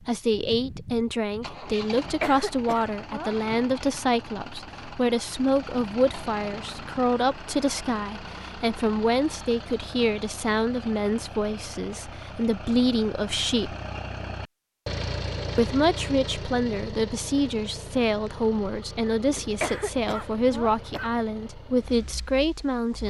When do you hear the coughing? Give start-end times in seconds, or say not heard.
2.0-3.4, 19.4-21.1.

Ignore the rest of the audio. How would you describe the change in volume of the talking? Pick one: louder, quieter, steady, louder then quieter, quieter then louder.
steady.